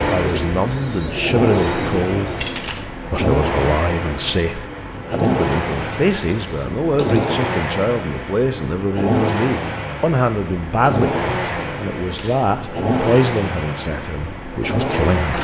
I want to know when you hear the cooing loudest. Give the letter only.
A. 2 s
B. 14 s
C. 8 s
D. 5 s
A.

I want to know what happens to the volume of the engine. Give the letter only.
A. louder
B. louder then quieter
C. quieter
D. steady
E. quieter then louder
D.